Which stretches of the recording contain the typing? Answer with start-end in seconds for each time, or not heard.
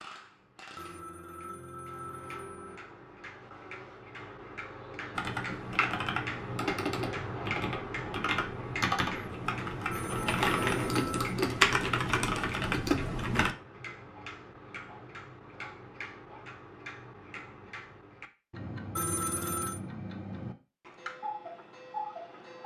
5.2-13.6.